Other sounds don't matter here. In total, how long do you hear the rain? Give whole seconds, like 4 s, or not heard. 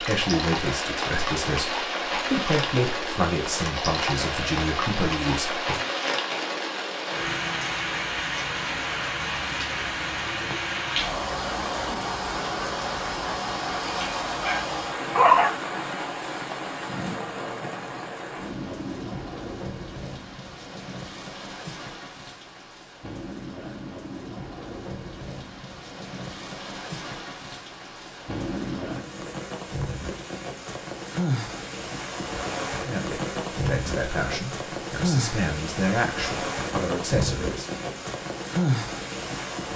40 s.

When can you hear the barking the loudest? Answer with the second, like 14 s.
15 s.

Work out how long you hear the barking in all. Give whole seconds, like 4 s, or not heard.
2 s.